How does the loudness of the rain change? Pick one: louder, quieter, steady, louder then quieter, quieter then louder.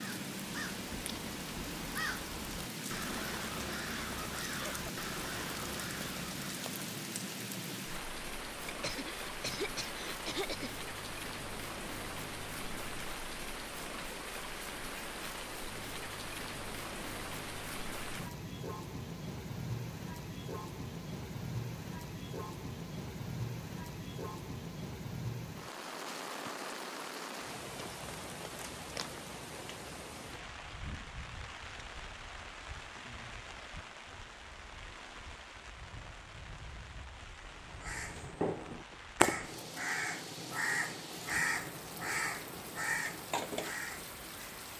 quieter.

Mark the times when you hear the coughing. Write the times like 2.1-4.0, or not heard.
8.7-10.7.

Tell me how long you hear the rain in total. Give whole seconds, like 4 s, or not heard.
45 s.